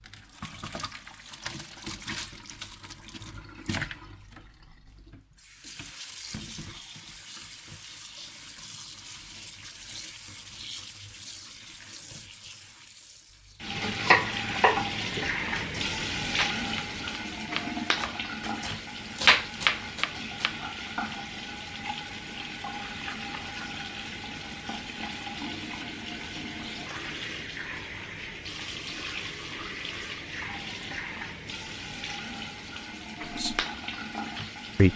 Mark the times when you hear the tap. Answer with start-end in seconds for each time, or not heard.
0.0-34.9.